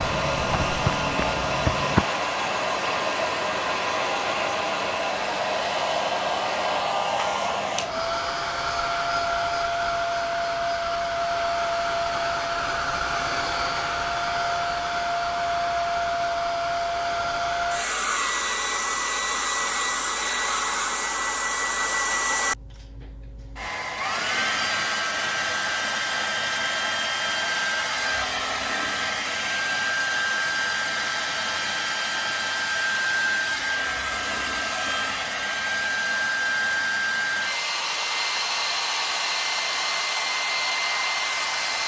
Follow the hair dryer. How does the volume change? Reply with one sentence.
The loudness of the hair dryer stays about the same.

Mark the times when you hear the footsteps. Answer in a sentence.
The footsteps can be heard from 0.0 to 2.0 s.